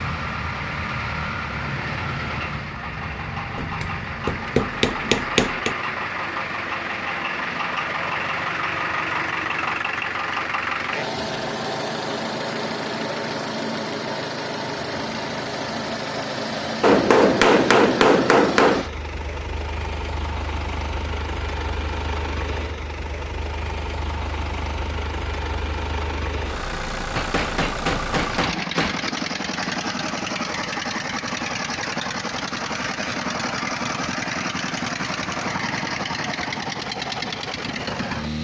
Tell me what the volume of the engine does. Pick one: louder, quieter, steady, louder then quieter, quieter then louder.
steady.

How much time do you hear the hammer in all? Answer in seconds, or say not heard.
6 s.